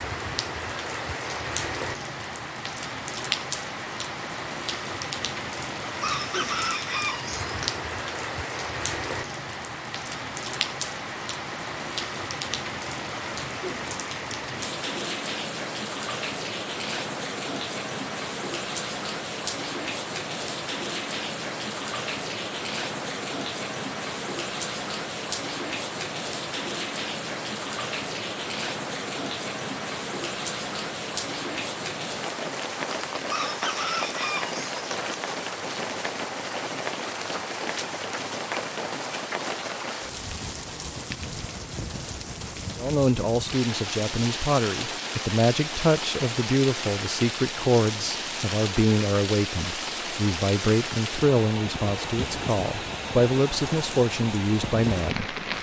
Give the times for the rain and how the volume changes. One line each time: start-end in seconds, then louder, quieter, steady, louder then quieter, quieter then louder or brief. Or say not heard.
0.0-55.5 steady.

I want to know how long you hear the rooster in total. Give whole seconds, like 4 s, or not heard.
3 s.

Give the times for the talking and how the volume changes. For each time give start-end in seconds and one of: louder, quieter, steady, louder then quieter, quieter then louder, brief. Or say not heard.
42.8-55.4 steady.